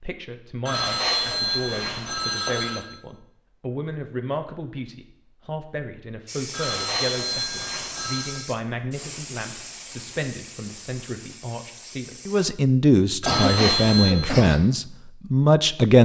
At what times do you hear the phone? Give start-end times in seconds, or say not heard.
0.7-2.9, 6.5-8.4, 13.2-14.2.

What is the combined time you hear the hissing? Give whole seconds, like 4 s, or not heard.
6 s.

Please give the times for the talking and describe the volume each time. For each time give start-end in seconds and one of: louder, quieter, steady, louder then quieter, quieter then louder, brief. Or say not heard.
0.0-16.0 louder.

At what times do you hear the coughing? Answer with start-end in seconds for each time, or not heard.
13.2-14.6.